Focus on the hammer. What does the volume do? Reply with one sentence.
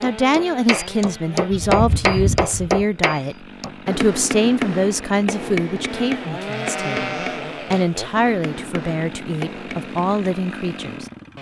The volume of the hammer goes down.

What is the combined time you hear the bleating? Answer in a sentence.
The bleating can be heard for 3 seconds in total.